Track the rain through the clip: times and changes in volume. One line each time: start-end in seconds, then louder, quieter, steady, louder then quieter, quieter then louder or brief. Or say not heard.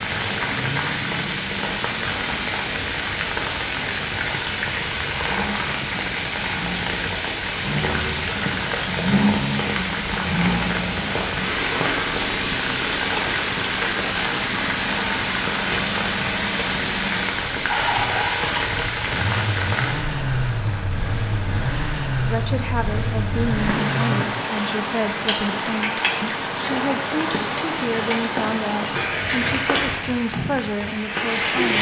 0.0-31.7 steady.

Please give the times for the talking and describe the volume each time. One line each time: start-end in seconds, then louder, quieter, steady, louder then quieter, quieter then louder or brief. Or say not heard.
22.2-31.7 steady.